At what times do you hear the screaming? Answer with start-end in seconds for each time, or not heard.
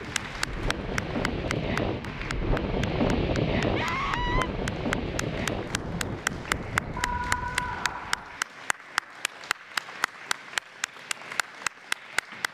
3.8-4.5, 7.0-8.4.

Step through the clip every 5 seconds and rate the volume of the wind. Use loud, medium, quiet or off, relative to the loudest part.
loud, medium, off.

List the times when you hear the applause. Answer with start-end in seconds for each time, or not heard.
0.0-12.4.